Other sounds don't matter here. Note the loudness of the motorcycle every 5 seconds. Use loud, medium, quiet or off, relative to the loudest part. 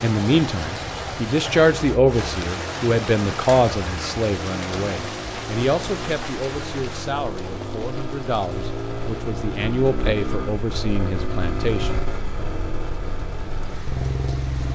medium, loud, loud.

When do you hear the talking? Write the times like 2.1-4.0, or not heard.
0.0-11.9.